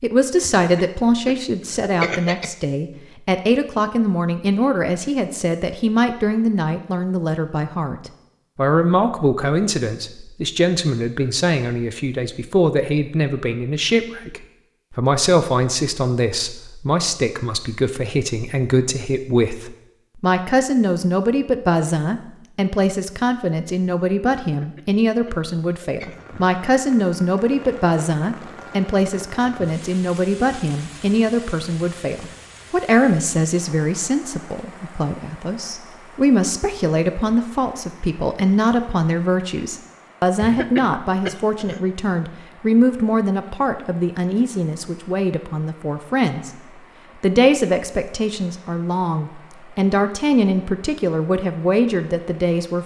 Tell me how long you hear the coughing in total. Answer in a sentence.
You can hear the coughing for 5 seconds altogether.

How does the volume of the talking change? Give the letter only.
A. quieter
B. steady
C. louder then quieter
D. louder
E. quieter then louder
B.